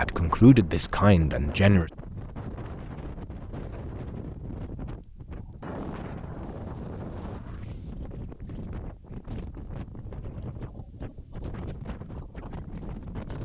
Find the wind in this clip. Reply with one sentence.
You can hear the wind from 0.0 to 13.3 s.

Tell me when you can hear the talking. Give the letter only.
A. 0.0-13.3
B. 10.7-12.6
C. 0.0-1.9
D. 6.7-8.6
C.